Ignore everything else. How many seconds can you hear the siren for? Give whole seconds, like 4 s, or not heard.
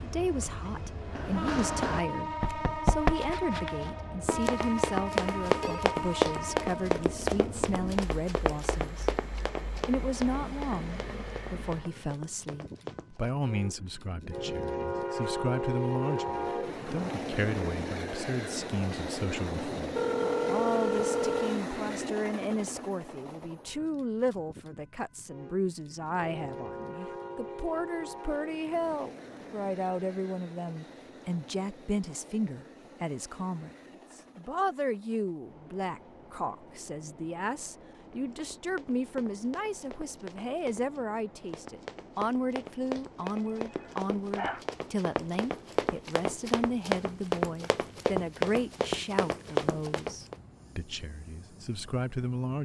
not heard.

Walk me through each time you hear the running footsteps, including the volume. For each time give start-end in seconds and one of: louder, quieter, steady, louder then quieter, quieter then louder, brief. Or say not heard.
1.1-13.4 quieter
38.0-50.4 louder.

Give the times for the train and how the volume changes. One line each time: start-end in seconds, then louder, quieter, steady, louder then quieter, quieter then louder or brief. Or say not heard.
0.0-52.6 quieter.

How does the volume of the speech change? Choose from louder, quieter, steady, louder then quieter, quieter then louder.
steady.